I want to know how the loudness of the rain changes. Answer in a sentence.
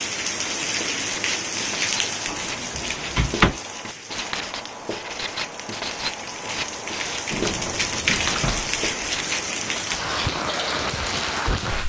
The loudness of the rain goes down, then up.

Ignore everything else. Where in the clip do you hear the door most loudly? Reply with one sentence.
The volume of the door peaks at 3 seconds.